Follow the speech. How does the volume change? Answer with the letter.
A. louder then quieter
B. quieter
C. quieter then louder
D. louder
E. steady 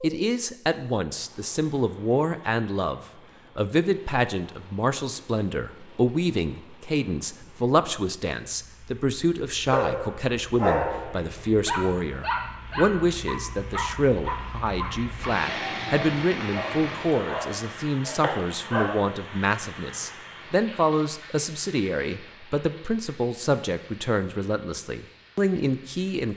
E.